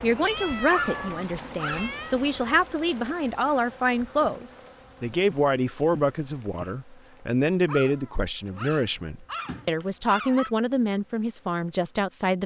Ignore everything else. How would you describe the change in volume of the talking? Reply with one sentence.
The volume of the talking stays about the same.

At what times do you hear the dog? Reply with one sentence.
The dog can be heard from 0.7 to 1.9 s and from 7.7 to 10.5 s.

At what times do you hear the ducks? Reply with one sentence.
The ducks can't be heard in this clip.